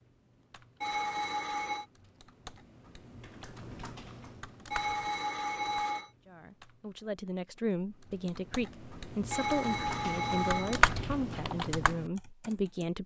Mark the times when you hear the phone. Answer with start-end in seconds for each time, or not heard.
0.8-1.9, 4.7-6.1, 9.3-10.8.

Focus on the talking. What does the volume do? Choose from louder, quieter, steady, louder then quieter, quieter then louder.
steady.